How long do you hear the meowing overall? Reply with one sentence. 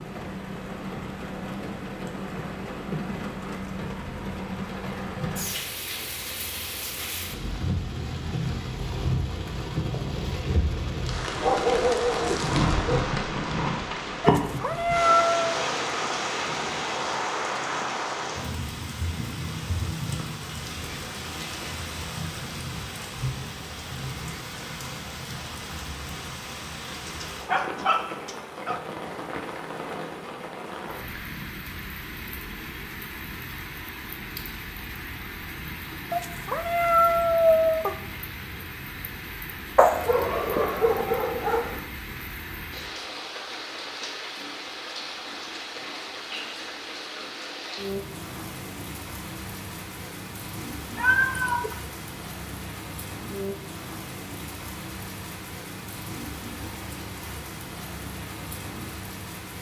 The meowing can be heard for 4 seconds in total.